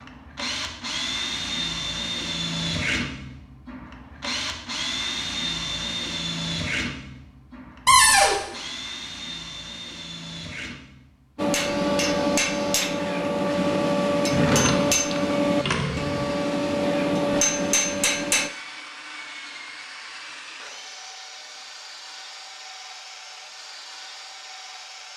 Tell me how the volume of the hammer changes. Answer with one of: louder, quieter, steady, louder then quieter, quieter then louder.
steady.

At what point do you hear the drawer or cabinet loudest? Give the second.
8 s.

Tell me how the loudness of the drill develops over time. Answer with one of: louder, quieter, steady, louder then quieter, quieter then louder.
quieter.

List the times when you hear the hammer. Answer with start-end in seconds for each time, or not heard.
11.3-18.5.